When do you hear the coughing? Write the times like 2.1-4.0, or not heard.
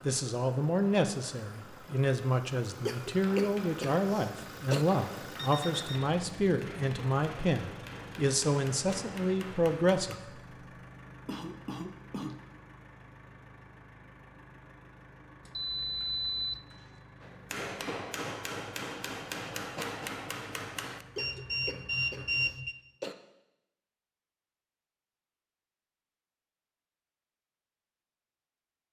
2.9-4.8, 11.2-12.4, 21.1-23.1.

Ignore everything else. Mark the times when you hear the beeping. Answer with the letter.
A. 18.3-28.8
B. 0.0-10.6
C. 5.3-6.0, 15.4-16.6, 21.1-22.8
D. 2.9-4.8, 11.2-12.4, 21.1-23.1
C.